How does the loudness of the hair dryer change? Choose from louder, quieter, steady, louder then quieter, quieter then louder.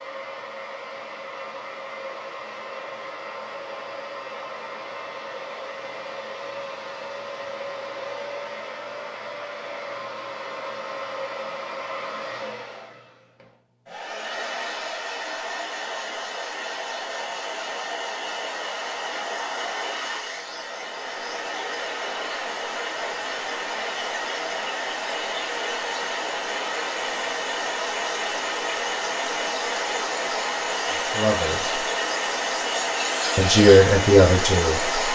louder.